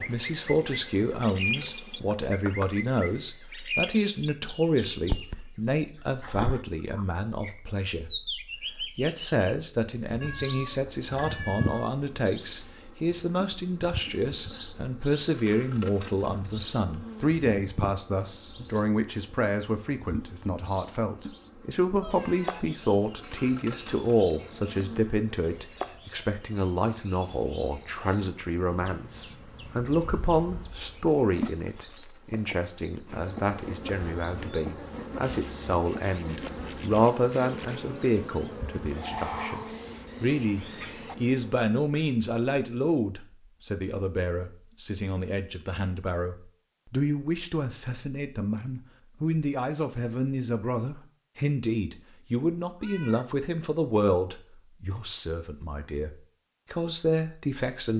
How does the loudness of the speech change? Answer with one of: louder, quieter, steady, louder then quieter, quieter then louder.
steady.